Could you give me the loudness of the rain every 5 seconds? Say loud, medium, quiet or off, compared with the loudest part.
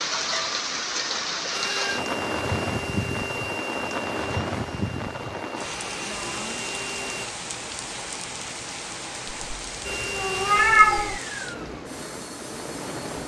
loud, medium, medium.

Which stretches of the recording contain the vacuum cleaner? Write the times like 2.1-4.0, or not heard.
1.5-7.3, 9.8-13.2.